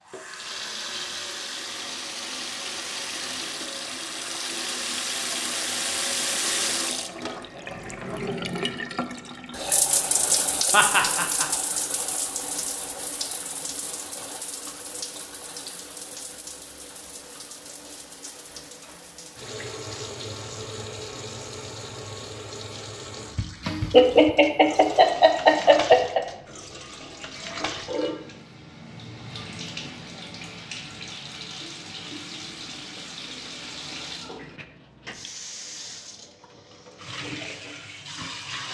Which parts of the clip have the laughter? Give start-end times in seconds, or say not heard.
10.7-11.5, 23.9-26.2.